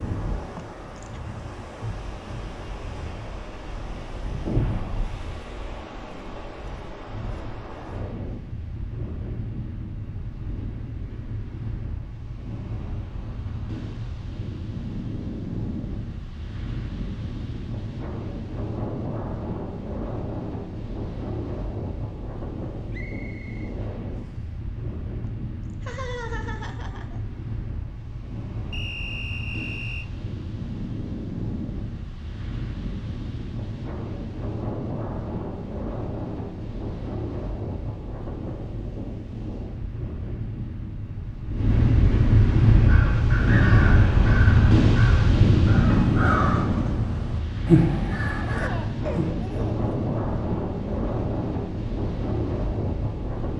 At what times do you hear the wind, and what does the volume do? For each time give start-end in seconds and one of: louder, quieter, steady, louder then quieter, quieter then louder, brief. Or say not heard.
0.0-53.5 louder.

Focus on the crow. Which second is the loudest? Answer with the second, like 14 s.
48 s.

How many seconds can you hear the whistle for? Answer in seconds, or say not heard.
3 s.